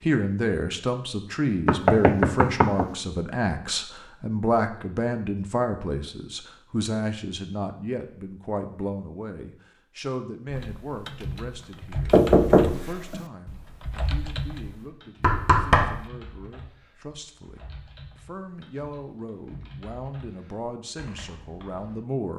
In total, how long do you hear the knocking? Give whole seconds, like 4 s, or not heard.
3 s.